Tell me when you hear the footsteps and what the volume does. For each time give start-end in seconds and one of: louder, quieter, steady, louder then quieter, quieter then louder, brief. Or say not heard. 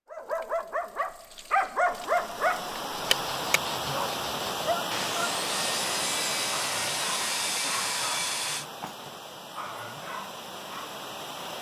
not heard.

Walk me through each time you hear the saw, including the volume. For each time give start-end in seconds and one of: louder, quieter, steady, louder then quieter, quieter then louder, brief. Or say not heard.
3.0-8.7 louder.